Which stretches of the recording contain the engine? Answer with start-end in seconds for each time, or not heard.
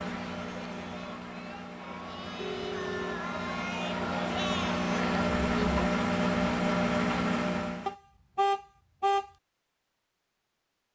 0.0-8.0.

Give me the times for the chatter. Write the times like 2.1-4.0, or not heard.
0.0-5.8.